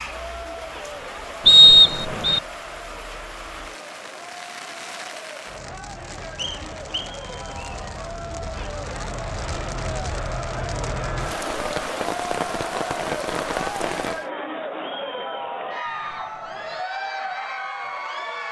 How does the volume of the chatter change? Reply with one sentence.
The loudness of the chatter goes up.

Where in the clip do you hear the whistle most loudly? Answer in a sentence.
The loudest moment of the whistle is at 2 seconds.